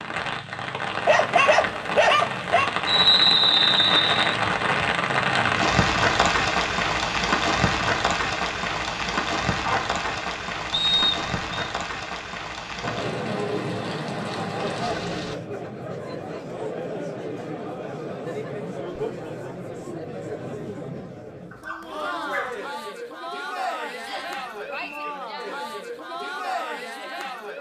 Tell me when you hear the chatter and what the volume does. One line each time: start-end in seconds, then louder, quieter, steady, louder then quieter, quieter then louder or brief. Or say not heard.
12.8-27.5 steady.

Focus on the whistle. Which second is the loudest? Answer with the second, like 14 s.
3 s.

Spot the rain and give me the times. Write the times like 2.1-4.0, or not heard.
0.0-15.3.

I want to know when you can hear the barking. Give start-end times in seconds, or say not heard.
1.1-2.7, 9.6-10.2, 21.5-22.6.